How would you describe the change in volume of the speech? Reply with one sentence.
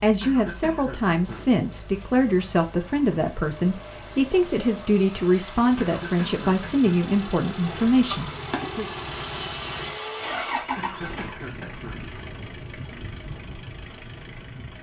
The loudness of the speech stays about the same.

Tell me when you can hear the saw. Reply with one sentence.
The saw can be heard from 8.1 to 10.7 s.